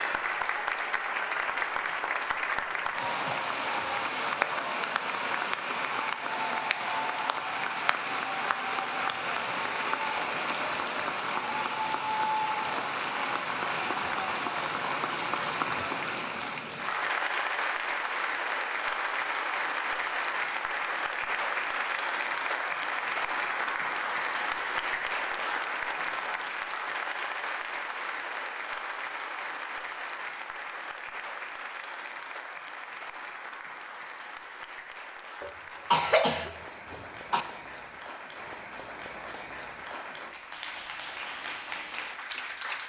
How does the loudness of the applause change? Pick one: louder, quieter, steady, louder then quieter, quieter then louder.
quieter.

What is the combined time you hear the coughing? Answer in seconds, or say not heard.
2 s.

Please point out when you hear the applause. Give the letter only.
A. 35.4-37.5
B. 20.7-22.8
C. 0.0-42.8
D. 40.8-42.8
C.